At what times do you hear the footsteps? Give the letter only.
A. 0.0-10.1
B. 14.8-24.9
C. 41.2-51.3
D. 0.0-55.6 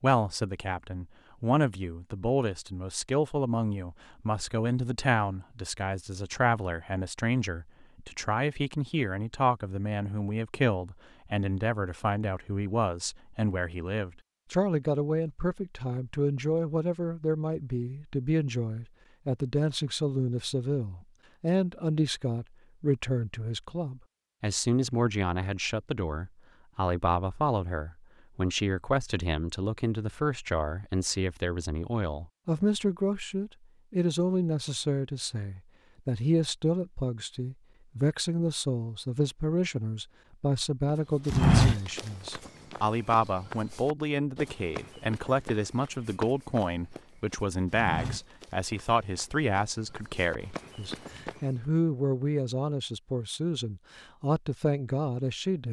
C.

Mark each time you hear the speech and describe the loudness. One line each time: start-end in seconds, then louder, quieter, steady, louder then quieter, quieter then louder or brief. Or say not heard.
0.0-55.6 steady.